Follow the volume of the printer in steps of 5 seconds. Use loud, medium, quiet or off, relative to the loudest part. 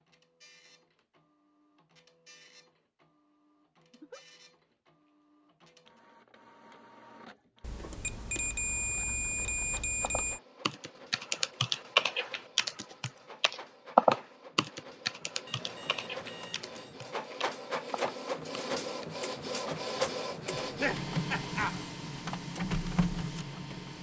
quiet, quiet, quiet, loud, loud.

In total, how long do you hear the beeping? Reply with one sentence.
You can hear the beeping for 4 seconds altogether.